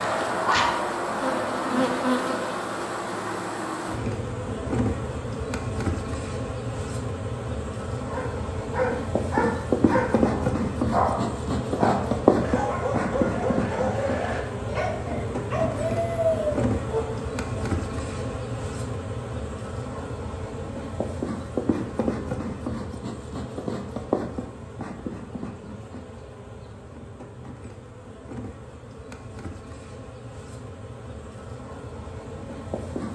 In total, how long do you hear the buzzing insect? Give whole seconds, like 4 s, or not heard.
33 s.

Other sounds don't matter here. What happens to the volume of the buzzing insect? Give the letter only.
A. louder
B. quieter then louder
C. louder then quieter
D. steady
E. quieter
E.